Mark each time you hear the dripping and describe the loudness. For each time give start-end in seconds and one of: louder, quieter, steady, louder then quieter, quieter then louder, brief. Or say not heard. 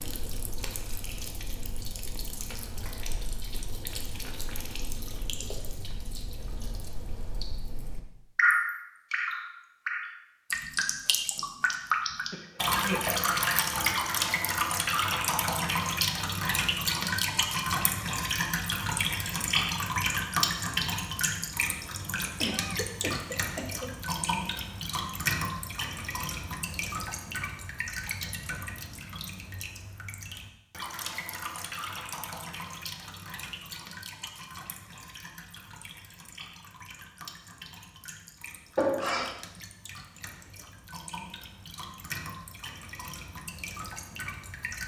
0.0-44.8 louder then quieter.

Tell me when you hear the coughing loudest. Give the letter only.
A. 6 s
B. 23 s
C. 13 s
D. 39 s
D.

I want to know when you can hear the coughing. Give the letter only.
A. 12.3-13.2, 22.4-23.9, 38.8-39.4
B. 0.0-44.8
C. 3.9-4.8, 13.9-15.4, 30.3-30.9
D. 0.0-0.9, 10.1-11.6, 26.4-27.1
A.